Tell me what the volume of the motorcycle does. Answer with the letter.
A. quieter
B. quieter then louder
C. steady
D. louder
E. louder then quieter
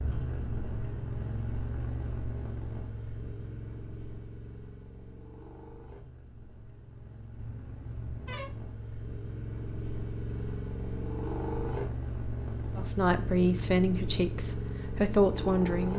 B.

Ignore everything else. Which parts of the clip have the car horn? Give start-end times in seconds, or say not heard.
7.3-8.6.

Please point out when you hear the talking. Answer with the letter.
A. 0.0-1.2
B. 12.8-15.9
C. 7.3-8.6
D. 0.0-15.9
B.